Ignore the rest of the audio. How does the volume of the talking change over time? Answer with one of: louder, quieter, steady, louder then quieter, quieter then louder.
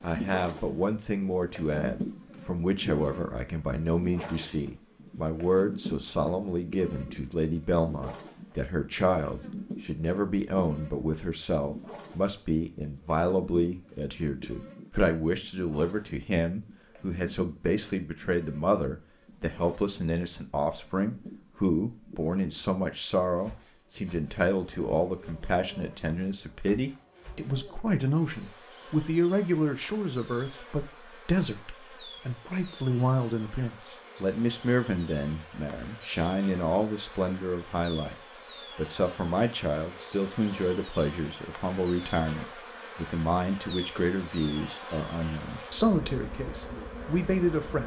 steady.